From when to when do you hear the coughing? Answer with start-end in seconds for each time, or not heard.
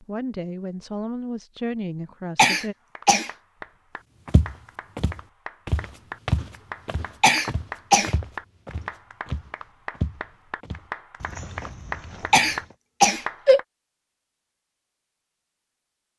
2.4-3.3, 7.2-8.2, 12.3-13.6.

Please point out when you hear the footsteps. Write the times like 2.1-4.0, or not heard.
4.2-12.8.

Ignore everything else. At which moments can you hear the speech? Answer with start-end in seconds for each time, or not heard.
0.0-2.8.